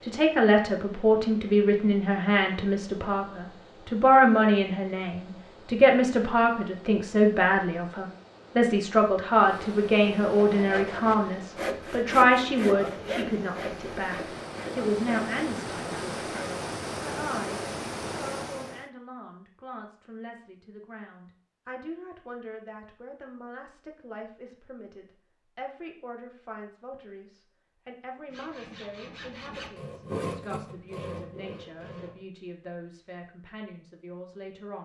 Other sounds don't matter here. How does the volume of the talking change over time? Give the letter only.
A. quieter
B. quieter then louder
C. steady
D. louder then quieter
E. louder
A.